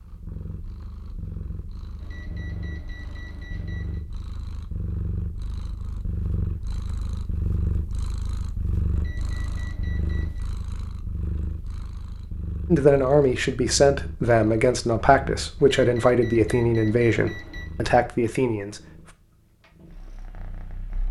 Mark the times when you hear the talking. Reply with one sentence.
You can hear the talking from 12.7 to 18.8 s.